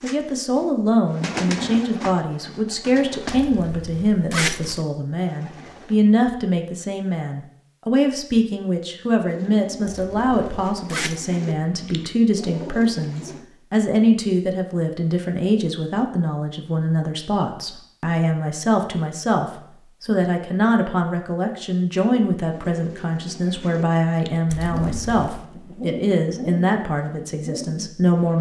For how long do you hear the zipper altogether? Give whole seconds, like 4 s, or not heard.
4 s.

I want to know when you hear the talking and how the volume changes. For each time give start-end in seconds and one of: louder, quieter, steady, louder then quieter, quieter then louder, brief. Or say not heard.
0.0-28.3 steady.